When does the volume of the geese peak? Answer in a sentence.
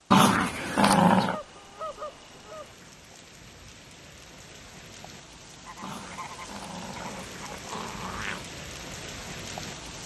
The volume of the geese peaks at 2 seconds.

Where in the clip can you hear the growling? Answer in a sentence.
The growling can be heard from 0.1 to 1.4 s and from 5.8 to 8.4 s.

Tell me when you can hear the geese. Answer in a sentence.
The geese can be heard from 1.2 to 2.8 s and from 5.7 to 7.6 s.